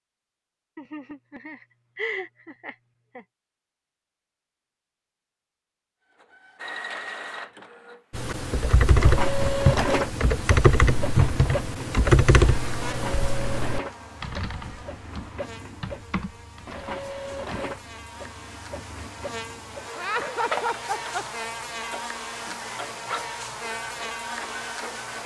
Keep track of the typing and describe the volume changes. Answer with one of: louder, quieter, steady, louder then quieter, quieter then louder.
quieter.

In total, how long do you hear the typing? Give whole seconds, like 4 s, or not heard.
10 s.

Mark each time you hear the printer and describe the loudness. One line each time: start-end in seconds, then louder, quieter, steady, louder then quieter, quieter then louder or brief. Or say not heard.
6.2-25.2 quieter.